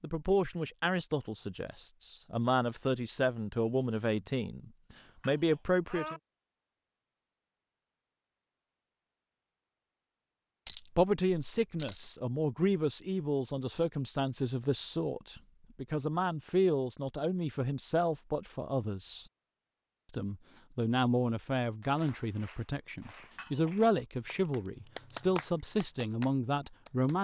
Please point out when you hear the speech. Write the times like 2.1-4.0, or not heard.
0.0-6.2, 10.9-19.2, 20.1-27.1.